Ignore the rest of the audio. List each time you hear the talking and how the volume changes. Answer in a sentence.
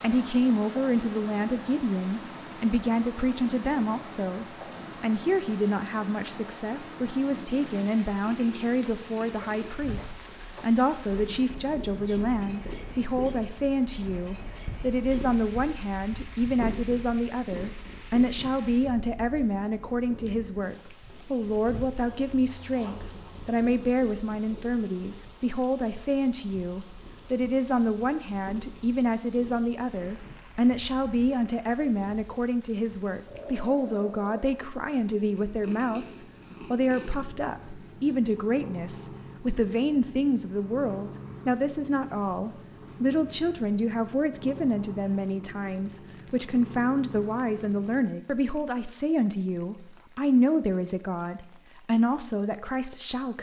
You can hear the talking from 0.0 to 53.3 s, at a steady volume.